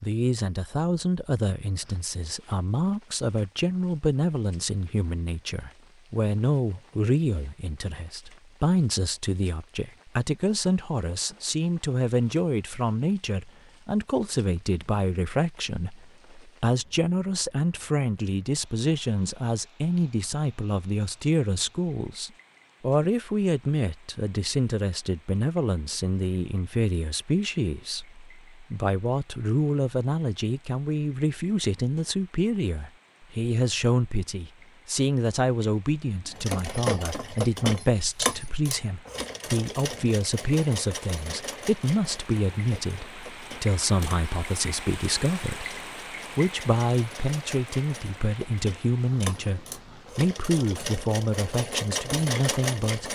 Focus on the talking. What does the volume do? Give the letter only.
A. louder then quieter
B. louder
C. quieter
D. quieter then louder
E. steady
E.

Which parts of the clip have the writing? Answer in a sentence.
You can't hear the writing here.